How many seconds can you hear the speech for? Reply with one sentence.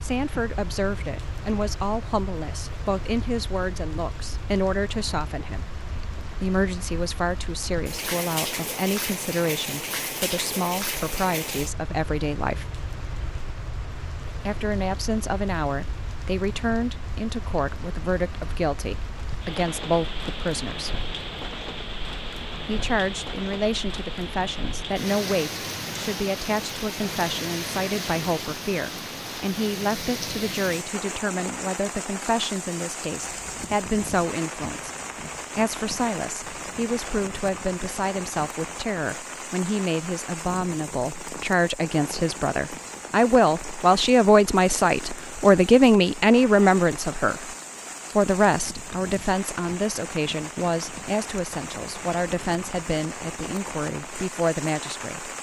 You can hear the speech for 51 seconds altogether.